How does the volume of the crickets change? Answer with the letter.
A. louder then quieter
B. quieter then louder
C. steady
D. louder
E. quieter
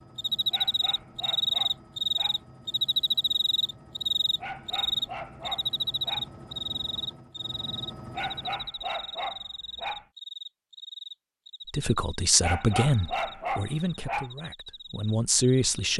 E.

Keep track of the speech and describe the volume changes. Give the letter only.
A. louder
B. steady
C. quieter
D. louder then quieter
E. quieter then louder
E.